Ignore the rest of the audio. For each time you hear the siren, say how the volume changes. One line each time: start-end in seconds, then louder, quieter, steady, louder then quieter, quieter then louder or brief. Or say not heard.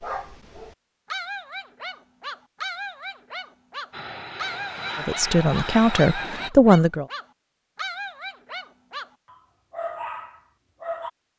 not heard.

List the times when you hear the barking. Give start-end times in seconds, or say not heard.
0.0-11.1.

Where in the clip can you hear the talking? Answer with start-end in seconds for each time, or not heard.
5.0-7.0.